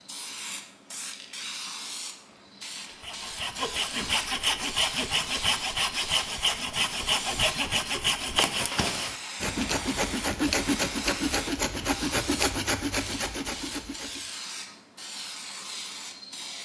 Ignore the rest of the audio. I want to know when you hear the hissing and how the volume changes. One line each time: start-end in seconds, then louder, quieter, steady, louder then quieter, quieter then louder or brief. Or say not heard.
0.0-16.5 steady.